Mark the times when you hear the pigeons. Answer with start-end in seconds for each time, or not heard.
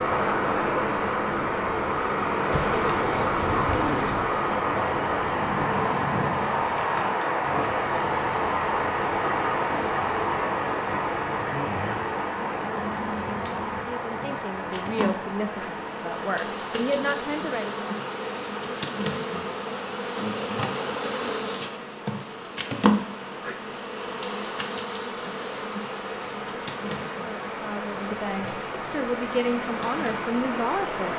2.5-4.2.